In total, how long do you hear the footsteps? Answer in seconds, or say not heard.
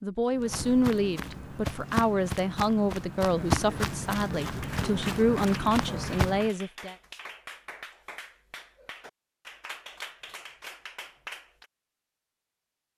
6 s.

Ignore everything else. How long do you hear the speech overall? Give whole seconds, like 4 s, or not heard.
7 s.